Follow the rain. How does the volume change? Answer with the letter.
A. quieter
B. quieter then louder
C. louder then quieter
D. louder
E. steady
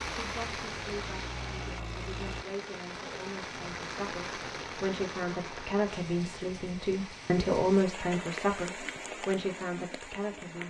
E.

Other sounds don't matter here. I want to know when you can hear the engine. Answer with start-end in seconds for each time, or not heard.
0.0-2.5.